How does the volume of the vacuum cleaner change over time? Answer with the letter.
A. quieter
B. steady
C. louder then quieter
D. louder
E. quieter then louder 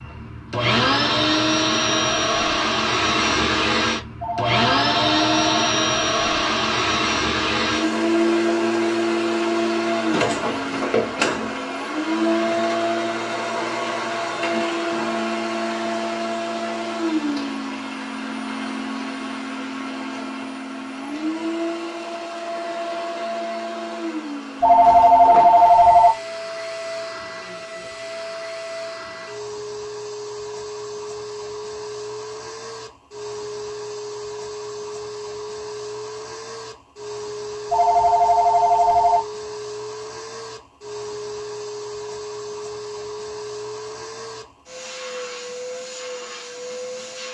A.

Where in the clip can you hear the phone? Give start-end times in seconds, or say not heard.
4.2-5.7, 24.6-26.1, 37.7-39.2.